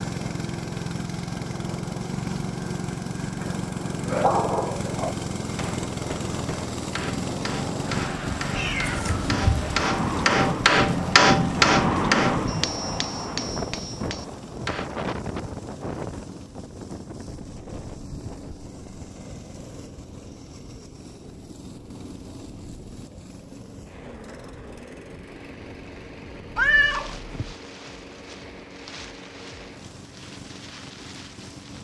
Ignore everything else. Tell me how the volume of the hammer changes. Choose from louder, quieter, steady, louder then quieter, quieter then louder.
louder then quieter.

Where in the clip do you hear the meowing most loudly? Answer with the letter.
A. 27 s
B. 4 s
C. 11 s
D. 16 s
A.